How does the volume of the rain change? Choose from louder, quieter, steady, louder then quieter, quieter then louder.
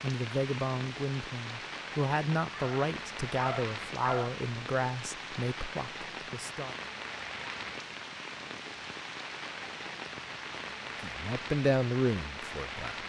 steady.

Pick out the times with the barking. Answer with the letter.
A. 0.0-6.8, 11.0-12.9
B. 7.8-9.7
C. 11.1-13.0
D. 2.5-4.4
D.